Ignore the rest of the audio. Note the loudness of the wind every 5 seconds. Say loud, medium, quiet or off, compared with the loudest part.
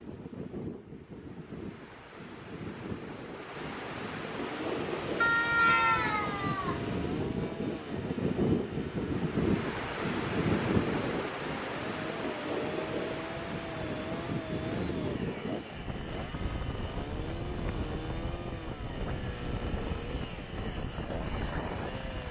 medium, loud, loud, medium, medium.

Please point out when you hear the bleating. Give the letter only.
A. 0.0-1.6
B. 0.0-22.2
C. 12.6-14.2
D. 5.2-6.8
D.